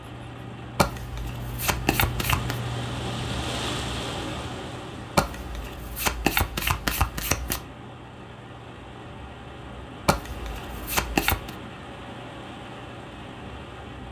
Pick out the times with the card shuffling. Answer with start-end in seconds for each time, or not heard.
0.8-2.6, 5.2-7.6, 10.1-11.5.